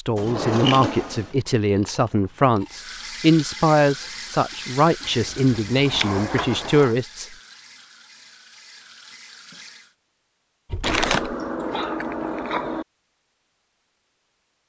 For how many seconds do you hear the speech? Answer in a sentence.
You can hear the speech for 7 seconds altogether.